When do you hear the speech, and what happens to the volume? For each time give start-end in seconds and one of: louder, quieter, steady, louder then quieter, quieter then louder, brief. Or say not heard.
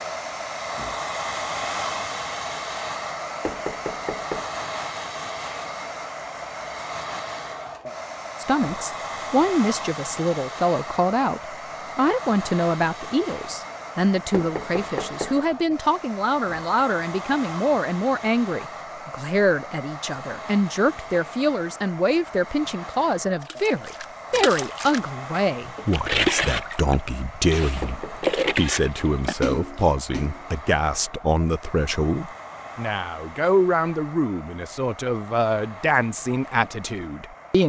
8.4-37.6 steady.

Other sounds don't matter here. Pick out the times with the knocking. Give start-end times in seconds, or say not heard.
3.5-4.5, 14.3-15.4, 27.8-28.7.